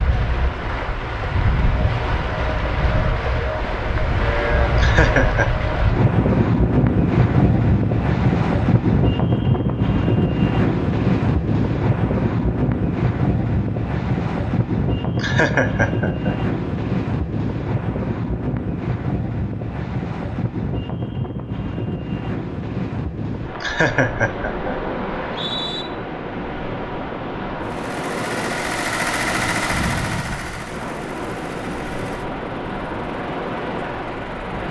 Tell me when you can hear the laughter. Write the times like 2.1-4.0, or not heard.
4.8-5.5, 15.2-16.5, 23.6-24.7.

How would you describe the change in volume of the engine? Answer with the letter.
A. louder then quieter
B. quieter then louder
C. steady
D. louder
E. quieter
E.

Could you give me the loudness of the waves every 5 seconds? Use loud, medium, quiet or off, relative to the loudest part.
medium, loud, loud, medium, medium, medium, medium.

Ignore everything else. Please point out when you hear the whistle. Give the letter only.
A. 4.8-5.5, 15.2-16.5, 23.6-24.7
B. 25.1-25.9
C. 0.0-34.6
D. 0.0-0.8
B.